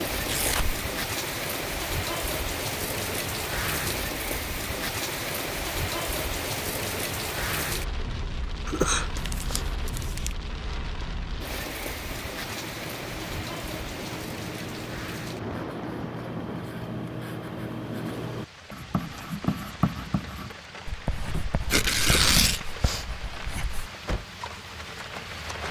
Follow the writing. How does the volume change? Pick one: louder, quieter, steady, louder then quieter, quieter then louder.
louder then quieter.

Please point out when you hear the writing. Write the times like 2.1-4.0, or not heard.
12.1-23.9.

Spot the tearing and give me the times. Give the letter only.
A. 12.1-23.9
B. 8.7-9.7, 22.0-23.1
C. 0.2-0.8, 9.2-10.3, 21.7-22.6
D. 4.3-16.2
C.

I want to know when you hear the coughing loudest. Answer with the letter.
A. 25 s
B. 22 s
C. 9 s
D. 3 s
C.